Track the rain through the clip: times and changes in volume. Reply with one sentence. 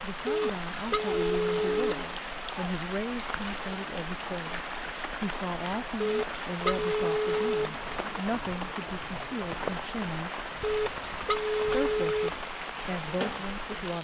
You can hear the rain from 0.0 to 13.9 s, at a steady volume.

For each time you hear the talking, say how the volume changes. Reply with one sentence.
You can hear the talking from 0.0 to 10.4 s, at a steady volume; and briefly from 11.7 to 13.9 s.